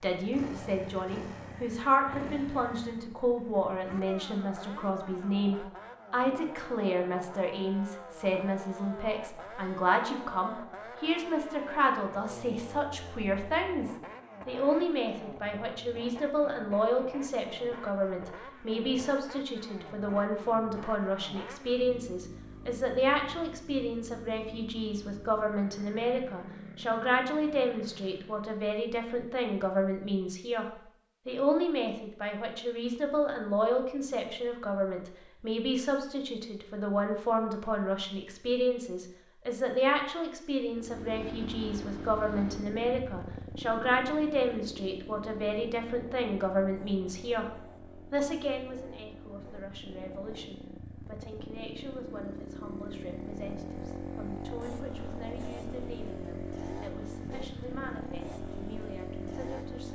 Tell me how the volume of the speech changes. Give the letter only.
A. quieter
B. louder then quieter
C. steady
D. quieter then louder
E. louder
A.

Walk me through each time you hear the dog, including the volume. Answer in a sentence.
The dog can't be heard in this clip.